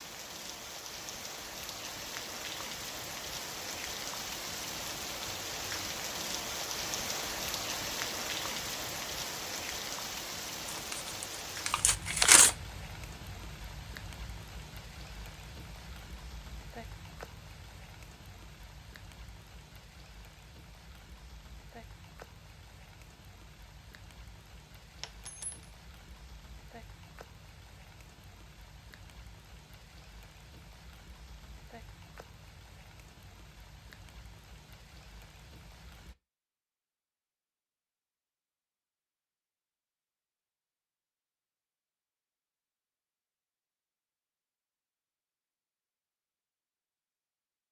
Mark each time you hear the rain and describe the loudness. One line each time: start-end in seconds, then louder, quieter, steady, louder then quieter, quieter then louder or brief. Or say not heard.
0.0-36.1 quieter.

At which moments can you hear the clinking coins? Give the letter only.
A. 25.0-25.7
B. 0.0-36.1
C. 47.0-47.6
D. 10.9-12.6
A.